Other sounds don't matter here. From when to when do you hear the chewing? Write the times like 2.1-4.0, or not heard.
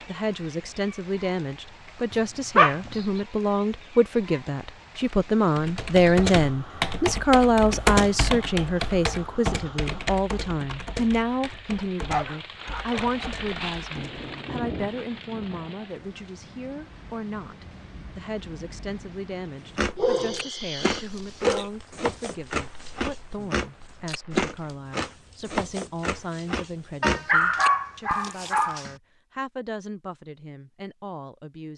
19.8-28.6.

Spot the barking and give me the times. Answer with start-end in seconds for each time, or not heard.
2.1-2.8, 11.8-13.3, 19.9-21.7, 27.0-28.9.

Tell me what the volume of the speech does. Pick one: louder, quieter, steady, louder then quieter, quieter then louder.
quieter.